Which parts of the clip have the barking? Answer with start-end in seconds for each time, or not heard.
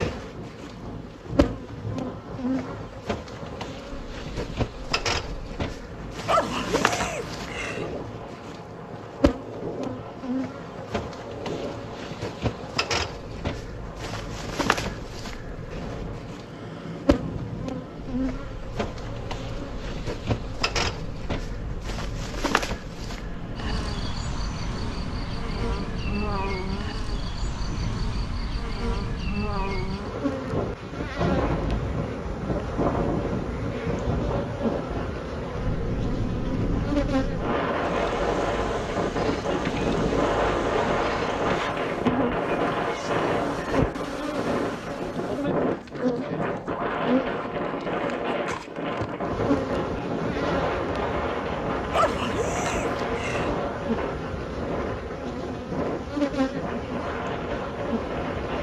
6.2-7.8, 51.9-53.5.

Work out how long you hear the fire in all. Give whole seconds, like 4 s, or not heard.
not heard.